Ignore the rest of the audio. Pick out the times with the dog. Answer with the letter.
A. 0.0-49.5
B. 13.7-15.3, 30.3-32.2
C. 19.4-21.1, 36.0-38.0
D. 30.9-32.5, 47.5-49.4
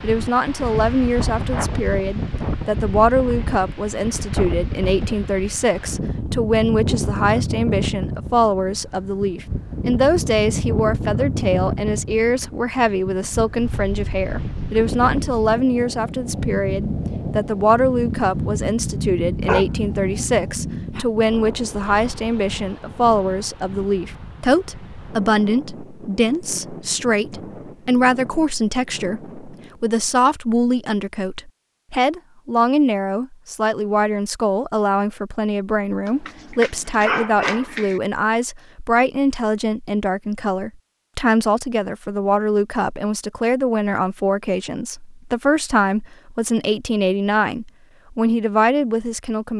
C.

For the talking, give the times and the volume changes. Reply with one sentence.
The talking can be heard from 0.0 to 49.5 s, at a steady volume.